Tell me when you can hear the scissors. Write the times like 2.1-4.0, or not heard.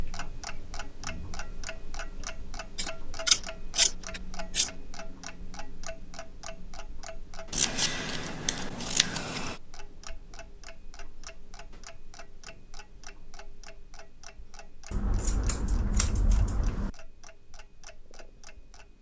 2.8-4.7, 7.5-9.6, 14.9-16.9.